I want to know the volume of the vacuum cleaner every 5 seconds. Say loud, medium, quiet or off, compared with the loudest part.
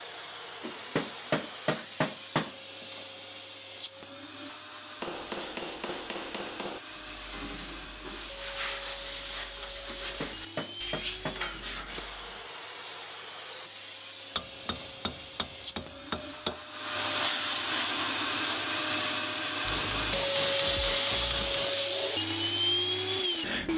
quiet, quiet, quiet, loud, loud.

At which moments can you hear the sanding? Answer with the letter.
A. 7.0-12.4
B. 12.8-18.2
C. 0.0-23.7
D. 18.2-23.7
A.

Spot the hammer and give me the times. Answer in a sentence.
You can hear the hammer from 0.6 to 2.5 s, from 5.0 to 6.8 s, from 10.0 to 11.4 s, from 14.3 to 16.6 s and from 19.6 to 21.9 s.